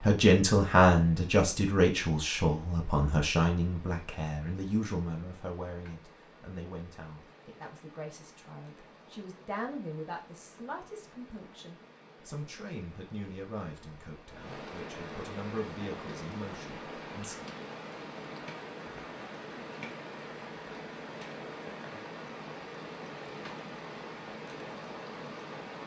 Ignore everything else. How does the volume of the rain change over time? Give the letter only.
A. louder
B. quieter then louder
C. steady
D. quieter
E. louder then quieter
A.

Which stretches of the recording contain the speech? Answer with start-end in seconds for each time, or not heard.
0.0-17.4.